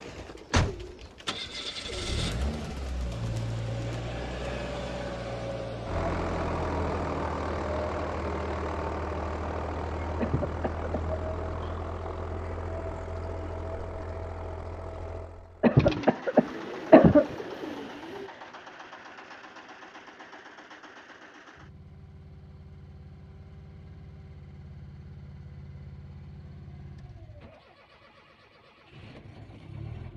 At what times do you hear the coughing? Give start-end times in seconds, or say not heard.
10.2-10.9, 15.6-17.4.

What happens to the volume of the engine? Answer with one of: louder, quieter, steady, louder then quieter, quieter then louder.
quieter.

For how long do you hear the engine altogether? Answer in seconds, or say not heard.
30 s.